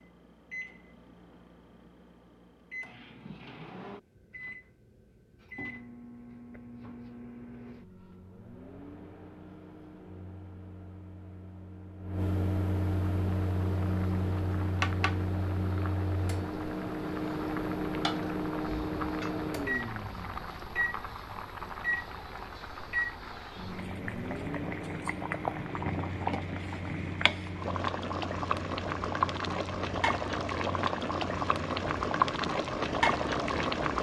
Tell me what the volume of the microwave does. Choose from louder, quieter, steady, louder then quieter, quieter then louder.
louder then quieter.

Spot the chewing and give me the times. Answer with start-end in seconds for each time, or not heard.
not heard.